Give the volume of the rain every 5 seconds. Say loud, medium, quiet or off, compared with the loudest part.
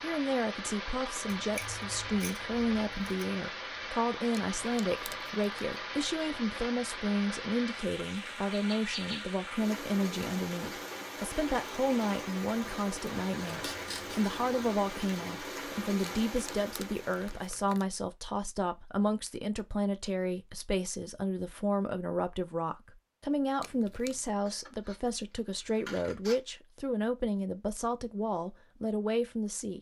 loud, loud, loud, loud, off, off.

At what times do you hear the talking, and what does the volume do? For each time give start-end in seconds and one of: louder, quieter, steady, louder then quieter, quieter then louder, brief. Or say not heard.
0.0-29.7 steady.